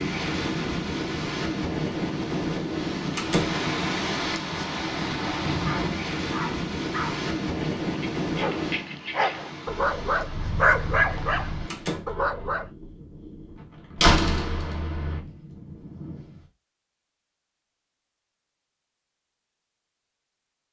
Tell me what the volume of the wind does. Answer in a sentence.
The loudness of the wind goes down.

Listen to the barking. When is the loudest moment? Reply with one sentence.
The loudest moment of the barking is at 11 seconds.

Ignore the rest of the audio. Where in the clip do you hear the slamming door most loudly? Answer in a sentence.
The loudest moment of the slamming door is at 14 seconds.